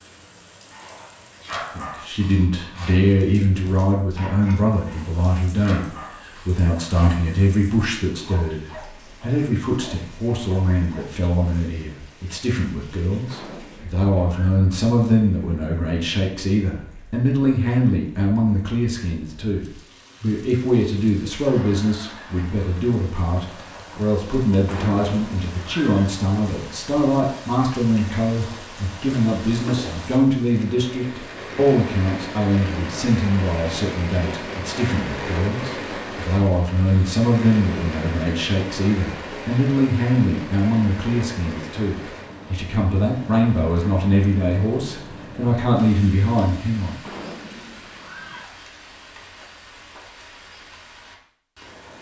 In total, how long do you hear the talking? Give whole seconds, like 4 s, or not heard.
45 s.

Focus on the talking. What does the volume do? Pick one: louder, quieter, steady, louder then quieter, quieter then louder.
steady.